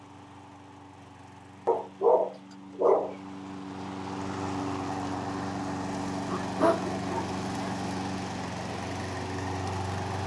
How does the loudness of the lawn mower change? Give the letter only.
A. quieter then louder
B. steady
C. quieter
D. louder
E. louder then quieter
D.